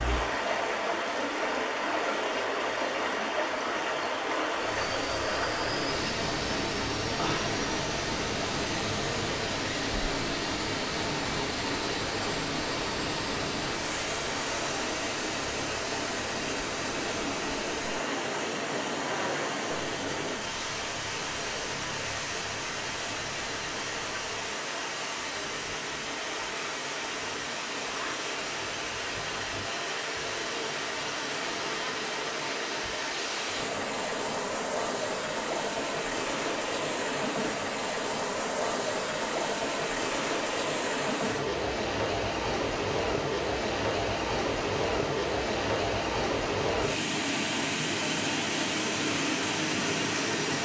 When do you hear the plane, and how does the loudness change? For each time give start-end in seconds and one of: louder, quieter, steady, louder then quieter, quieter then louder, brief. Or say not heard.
4.5-24.6 quieter.